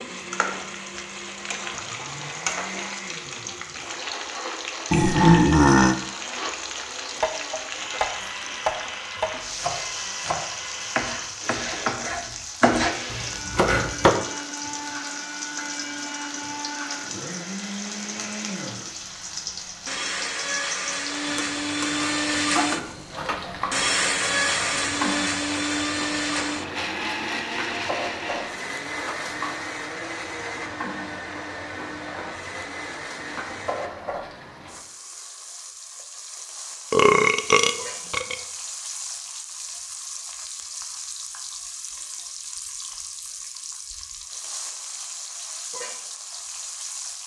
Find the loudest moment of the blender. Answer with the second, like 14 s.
24 s.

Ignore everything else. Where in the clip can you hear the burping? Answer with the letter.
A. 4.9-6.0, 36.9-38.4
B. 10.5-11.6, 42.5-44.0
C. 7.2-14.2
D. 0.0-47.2
A.